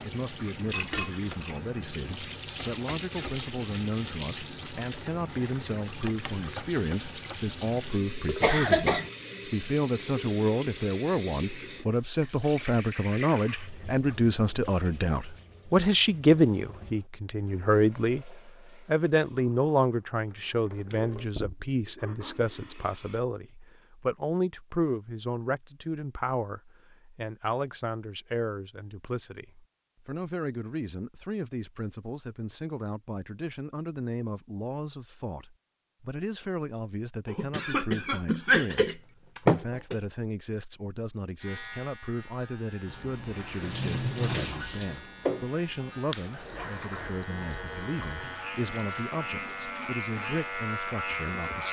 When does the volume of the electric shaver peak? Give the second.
51 s.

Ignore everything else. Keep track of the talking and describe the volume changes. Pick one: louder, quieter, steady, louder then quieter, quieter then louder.
louder then quieter.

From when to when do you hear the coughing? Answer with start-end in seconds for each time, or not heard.
8.4-9.1, 37.2-40.0.